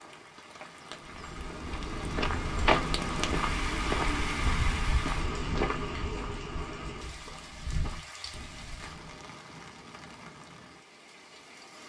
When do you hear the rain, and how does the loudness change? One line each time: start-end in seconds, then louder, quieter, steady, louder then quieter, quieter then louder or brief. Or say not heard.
0.0-11.8 louder then quieter.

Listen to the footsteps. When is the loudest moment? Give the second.
3 s.